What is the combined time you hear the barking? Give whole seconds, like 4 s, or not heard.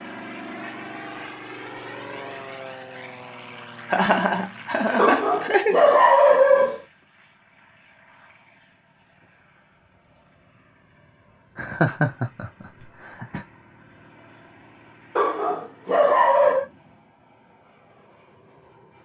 3 s.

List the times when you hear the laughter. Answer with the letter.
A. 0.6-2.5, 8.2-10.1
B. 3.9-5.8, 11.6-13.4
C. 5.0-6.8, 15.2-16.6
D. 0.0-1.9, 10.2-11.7
B.